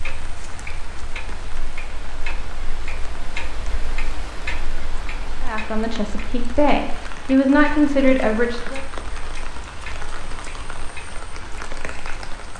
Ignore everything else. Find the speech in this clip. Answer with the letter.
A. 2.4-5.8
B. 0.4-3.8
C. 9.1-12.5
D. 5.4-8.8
D.